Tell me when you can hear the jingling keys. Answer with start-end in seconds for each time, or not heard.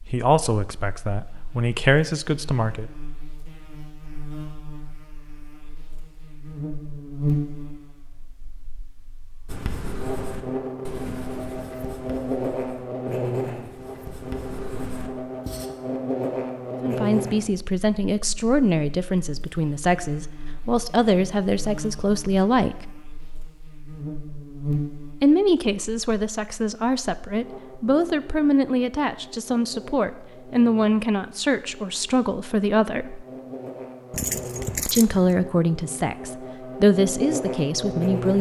34.1-35.5.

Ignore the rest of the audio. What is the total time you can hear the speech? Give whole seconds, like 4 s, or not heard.
20 s.